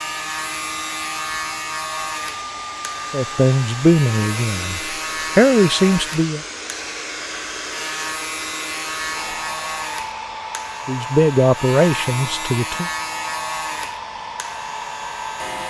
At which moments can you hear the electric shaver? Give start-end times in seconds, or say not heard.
0.0-15.6.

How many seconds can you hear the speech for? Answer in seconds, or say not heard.
5 s.